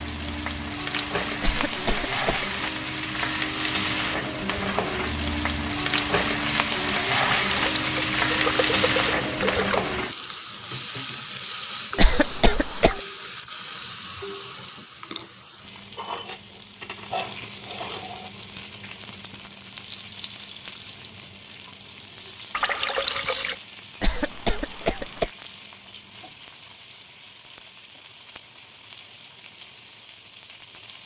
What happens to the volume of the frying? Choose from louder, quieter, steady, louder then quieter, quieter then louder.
quieter.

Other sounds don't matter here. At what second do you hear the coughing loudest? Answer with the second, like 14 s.
12 s.